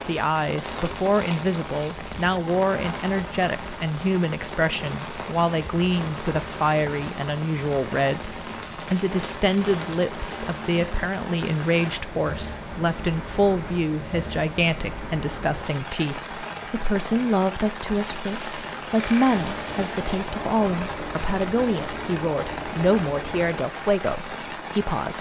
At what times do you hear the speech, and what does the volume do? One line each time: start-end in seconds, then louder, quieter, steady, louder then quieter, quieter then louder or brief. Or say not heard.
0.1-25.1 steady.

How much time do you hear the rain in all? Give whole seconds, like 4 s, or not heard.
25 s.